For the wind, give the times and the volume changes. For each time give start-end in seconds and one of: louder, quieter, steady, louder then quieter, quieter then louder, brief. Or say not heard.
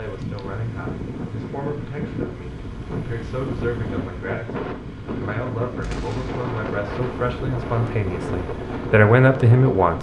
0.0-9.9 steady.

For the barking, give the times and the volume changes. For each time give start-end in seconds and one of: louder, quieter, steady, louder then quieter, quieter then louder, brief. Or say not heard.
not heard.